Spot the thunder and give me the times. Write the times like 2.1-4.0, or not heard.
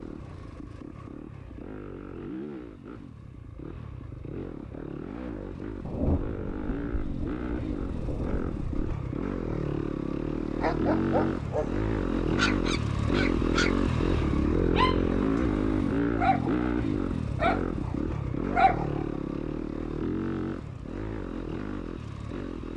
5.8-8.8.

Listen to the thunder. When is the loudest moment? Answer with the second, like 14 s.
6 s.